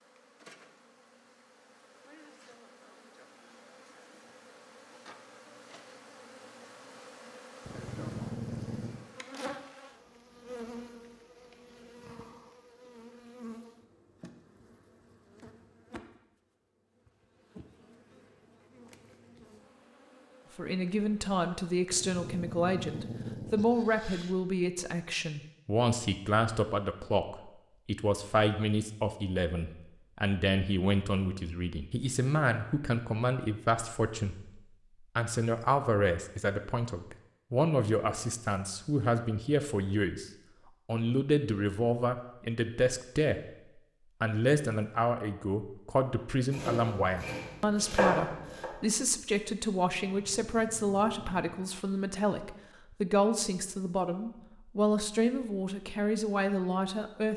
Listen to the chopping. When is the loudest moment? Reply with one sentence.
The loudest moment of the chopping is at 48 seconds.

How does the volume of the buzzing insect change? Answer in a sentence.
The loudness of the buzzing insect goes up, then down.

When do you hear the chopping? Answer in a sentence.
The chopping can be heard from 46.5 to 48.7 s.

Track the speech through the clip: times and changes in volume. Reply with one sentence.
You can hear the speech from 20.6 to 43.4 s, at a steady volume; and from 44.2 to 57.3 s, at a steady volume.